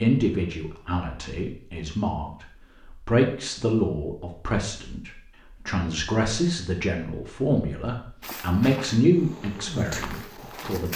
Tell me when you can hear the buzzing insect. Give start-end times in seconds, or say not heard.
9.1-10.8.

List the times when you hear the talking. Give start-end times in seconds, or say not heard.
0.0-10.9.